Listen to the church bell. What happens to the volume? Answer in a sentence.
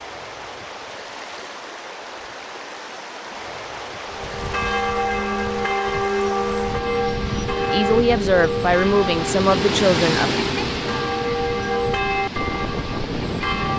The volume of the church bell stays about the same.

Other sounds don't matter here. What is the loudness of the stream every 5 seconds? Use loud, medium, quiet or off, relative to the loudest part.
medium, loud, loud.